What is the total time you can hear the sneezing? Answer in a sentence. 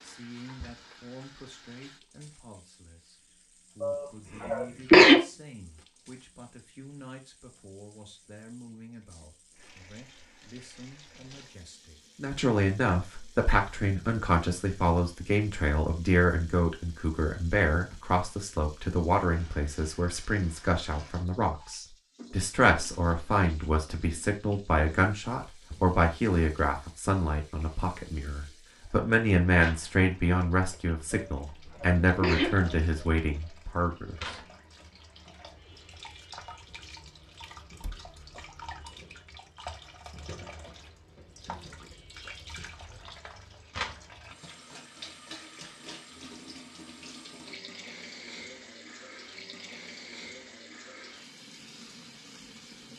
The sneezing can be heard for 3 seconds in total.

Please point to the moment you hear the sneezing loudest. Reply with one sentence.
The loudest moment of the sneezing is at 5 seconds.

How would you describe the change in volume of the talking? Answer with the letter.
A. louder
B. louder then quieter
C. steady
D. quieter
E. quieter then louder
A.